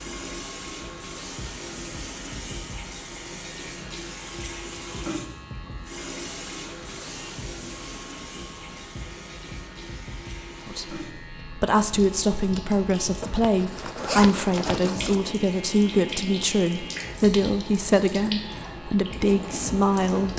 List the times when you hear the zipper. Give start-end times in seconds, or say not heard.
13.2-15.2.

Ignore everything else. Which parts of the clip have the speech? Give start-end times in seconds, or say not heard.
10.7-20.3.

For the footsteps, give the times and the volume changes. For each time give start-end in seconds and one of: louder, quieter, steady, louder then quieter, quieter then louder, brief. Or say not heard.
not heard.